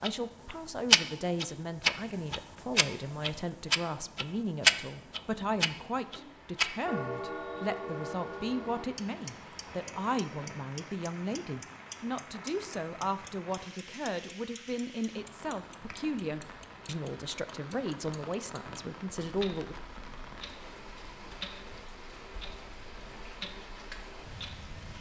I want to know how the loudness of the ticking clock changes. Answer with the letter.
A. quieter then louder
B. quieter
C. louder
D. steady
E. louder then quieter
B.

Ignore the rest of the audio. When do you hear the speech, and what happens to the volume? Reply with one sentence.
You can hear the speech from 0.0 to 19.8 s, at a steady volume.